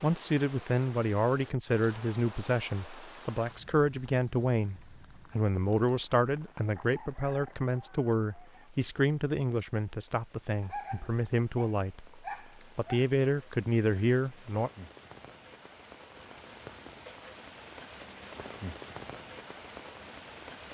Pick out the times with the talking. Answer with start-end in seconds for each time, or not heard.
0.0-14.7.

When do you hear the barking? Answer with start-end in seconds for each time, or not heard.
10.6-13.1.